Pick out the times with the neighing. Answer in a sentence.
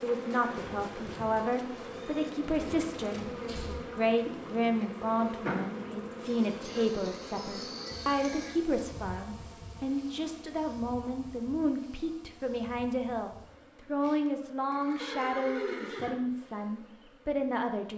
You can hear the neighing from 2.4 to 3.8 s, from 6.6 to 8.6 s and from 14.7 to 16.1 s.